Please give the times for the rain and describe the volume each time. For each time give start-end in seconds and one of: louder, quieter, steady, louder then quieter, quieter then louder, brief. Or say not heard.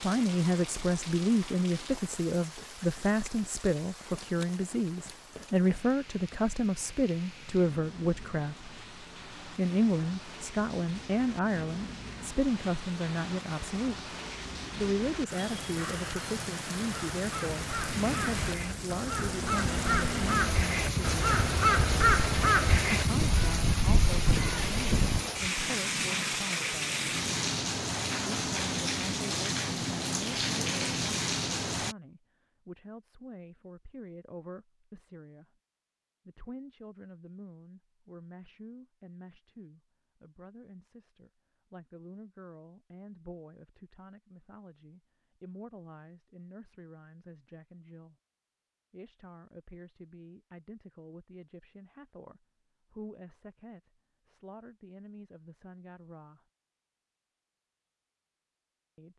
0.0-31.9 louder.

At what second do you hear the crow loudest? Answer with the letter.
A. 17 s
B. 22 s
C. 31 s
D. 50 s
B.